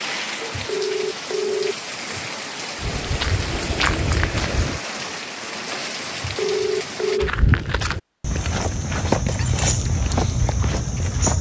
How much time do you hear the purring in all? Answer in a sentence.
You can't hear the purring here.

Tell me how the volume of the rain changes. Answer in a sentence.
The volume of the rain stays about the same.